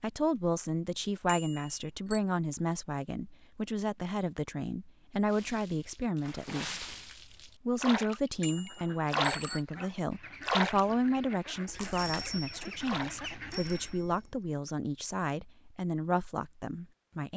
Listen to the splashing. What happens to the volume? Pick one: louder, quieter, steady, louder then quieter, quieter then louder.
louder then quieter.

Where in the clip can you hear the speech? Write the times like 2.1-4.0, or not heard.
0.0-6.8, 7.7-17.3.